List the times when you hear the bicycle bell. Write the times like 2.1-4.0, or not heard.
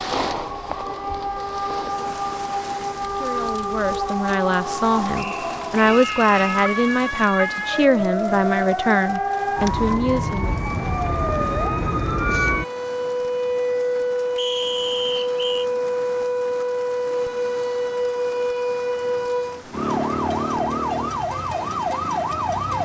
not heard.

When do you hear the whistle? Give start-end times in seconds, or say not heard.
5.2-6.6, 14.3-15.7.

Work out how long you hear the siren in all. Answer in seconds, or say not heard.
23 s.